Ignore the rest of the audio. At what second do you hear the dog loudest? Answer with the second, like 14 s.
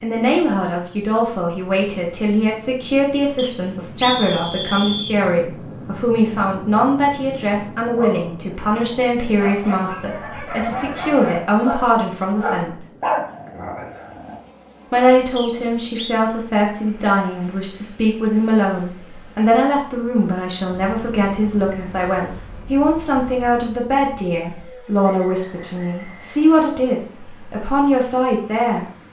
13 s.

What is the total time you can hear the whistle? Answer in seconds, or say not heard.
4 s.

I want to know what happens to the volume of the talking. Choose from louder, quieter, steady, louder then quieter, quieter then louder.
steady.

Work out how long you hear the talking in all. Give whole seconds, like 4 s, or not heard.
27 s.